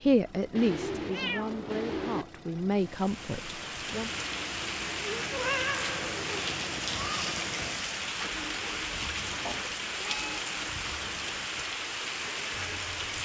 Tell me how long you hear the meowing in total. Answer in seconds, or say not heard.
4 s.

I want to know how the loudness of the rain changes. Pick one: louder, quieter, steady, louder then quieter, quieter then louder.
steady.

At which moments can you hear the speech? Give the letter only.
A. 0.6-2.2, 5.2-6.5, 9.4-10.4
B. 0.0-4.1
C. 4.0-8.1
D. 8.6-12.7
B.